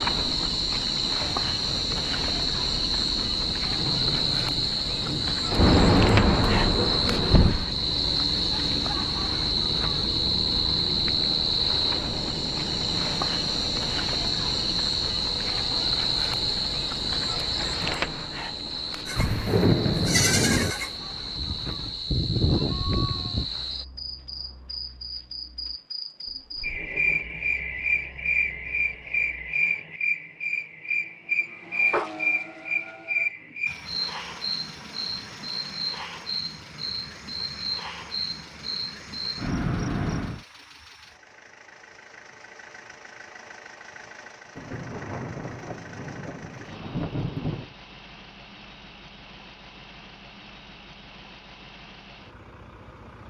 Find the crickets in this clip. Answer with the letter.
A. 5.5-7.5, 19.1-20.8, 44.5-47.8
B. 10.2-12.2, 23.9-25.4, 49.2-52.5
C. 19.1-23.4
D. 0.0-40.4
D.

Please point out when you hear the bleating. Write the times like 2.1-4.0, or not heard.
19.1-23.4.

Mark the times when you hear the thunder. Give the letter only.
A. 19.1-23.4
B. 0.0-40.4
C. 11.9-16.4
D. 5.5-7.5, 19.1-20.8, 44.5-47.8
D.